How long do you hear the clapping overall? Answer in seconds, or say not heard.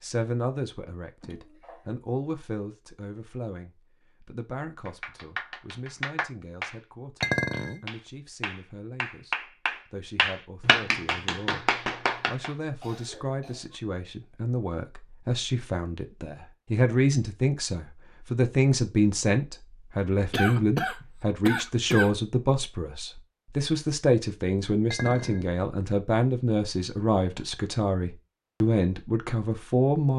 8 s.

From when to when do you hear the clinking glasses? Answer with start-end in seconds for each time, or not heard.
7.2-7.8, 24.9-25.5.